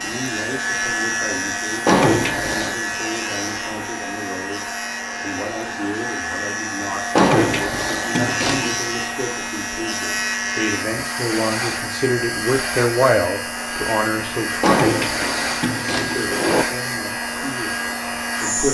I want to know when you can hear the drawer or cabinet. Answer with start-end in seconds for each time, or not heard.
1.9-2.8, 7.2-8.8, 14.6-16.6.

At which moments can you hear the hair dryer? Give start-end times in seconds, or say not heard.
0.0-18.6.